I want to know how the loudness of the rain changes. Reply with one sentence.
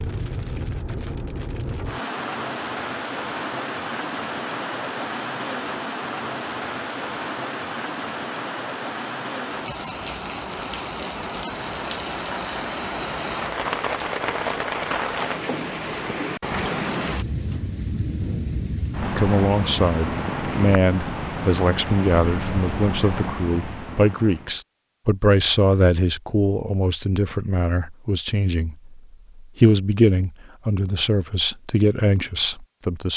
The loudness of the rain stays about the same.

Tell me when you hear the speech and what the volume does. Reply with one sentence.
You can hear the speech from 19.1 to 33.1 s, at a steady volume.